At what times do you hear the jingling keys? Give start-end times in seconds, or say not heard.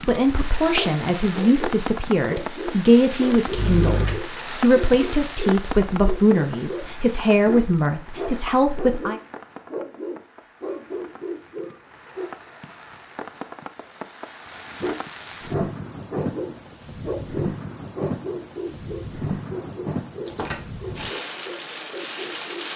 3.5-4.2, 20.2-21.1.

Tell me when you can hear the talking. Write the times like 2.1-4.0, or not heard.
0.1-9.2.